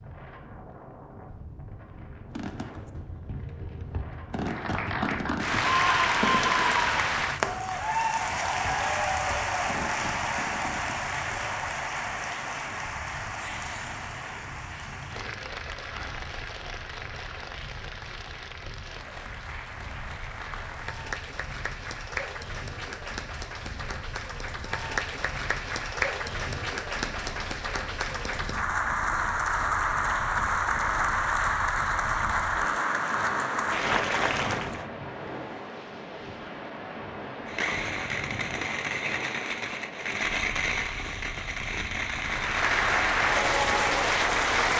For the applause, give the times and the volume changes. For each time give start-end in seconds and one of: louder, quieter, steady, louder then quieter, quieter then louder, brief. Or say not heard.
4.4-34.9 quieter then louder
42.2-44.7 brief.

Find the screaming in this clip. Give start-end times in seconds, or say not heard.
5.6-7.0.